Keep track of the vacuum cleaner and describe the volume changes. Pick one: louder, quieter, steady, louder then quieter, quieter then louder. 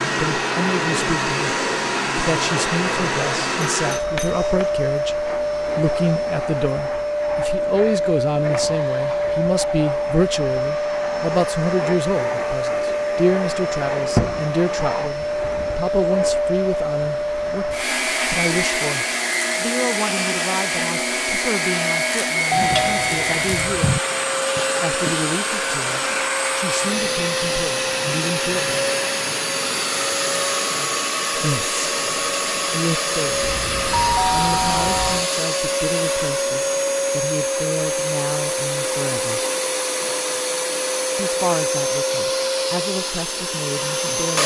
steady.